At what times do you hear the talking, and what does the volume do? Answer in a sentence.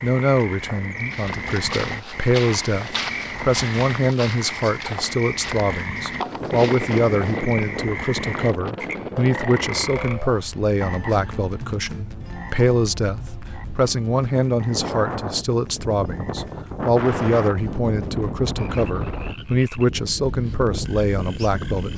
You can hear the talking from 0.0 to 21.9 s, at a steady volume.